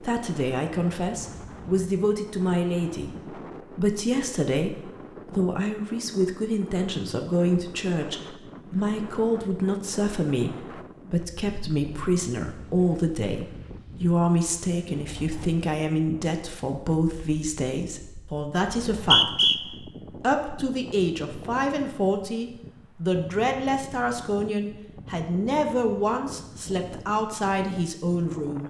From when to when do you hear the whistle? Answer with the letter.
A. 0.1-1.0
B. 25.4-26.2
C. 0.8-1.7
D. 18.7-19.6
D.